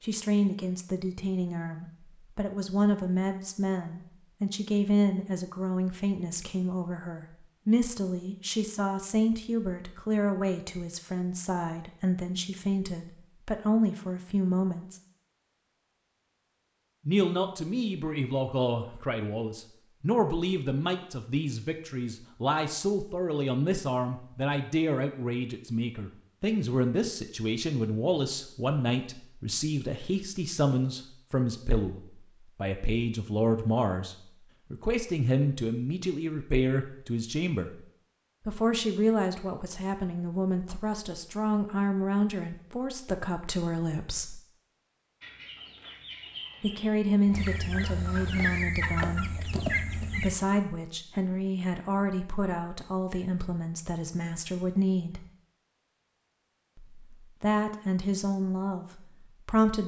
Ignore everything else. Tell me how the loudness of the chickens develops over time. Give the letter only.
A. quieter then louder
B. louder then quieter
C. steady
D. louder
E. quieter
D.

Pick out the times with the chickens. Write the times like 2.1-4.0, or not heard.
45.2-50.4.